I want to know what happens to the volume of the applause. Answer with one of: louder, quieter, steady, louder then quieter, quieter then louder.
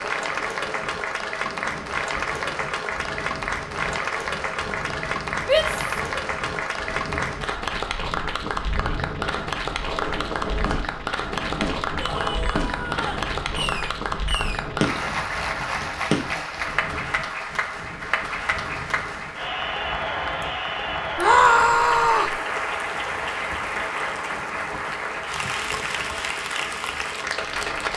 steady.